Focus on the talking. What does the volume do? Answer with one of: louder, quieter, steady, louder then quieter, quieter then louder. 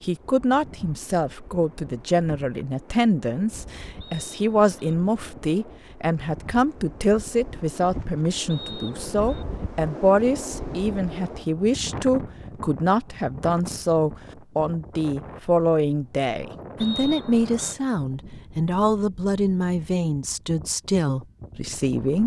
steady.